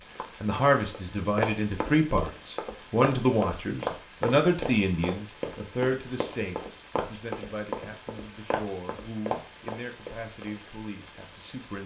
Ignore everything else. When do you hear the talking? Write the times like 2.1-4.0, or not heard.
0.4-11.8.